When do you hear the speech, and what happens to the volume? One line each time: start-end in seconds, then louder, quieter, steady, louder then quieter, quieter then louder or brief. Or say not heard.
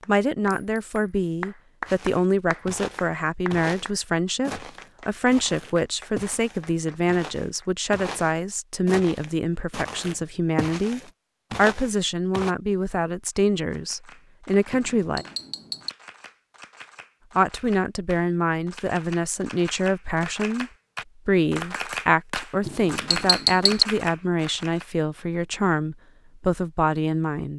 0.1-15.2 steady
17.4-27.5 steady.